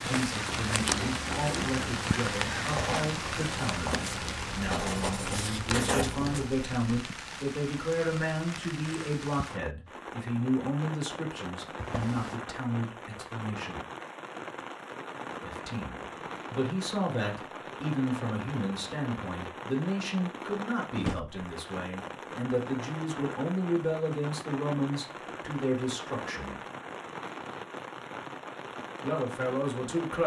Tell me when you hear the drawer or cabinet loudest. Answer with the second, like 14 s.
21 s.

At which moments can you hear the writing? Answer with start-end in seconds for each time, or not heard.
0.5-6.5.